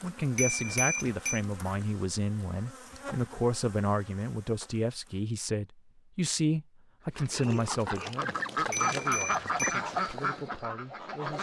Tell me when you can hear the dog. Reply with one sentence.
The dog can't be heard in this clip.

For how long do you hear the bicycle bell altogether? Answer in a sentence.
The bicycle bell can be heard for 2 seconds in total.